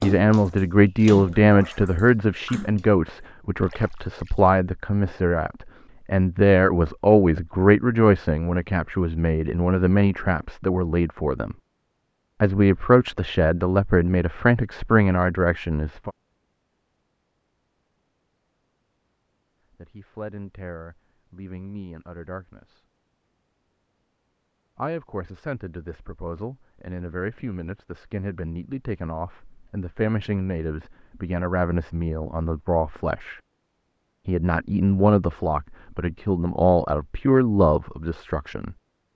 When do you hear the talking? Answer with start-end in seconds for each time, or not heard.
0.0-11.6, 12.4-16.1, 19.8-22.8, 24.8-33.4, 34.2-38.8.